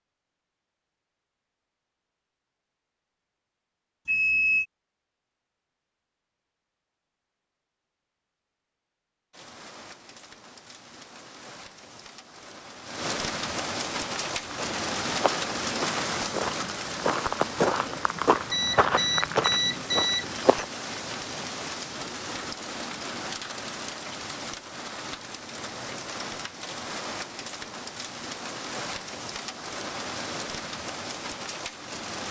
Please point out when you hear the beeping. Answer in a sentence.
You can hear the beeping from 4.0 to 4.7 s and from 18.5 to 20.2 s.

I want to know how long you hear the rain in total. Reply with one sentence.
You can hear the rain for 23 seconds altogether.